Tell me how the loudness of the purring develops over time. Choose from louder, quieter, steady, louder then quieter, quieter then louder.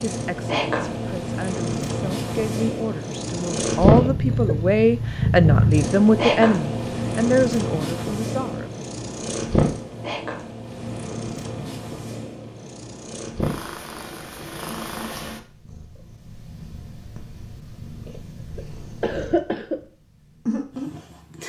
quieter.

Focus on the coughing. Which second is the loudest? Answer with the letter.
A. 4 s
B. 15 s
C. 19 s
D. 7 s
C.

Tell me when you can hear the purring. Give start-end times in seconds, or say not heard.
0.0-21.4.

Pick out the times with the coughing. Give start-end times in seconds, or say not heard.
4.0-4.6, 18.1-19.8.